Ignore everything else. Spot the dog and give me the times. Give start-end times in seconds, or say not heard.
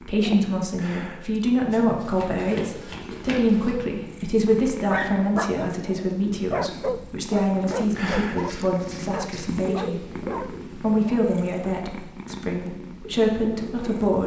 4.8-11.2.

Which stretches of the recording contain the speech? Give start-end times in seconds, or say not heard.
0.0-14.2.